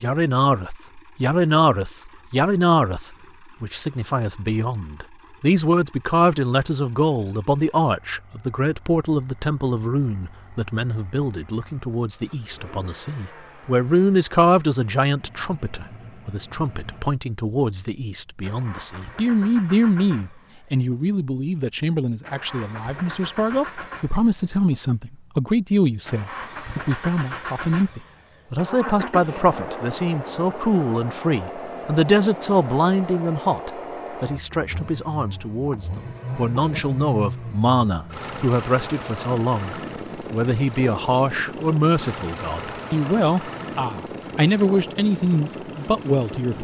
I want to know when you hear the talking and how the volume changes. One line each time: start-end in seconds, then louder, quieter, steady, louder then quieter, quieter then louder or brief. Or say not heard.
0.0-46.5 steady.